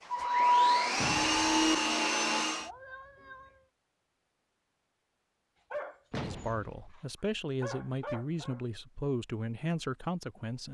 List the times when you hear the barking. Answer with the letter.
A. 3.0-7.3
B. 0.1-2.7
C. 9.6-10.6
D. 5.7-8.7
D.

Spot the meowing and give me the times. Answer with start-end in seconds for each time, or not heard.
2.6-3.6.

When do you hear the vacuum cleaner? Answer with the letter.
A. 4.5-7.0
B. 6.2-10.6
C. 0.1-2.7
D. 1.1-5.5
C.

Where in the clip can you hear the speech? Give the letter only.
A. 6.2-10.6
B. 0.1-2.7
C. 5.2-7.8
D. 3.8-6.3
A.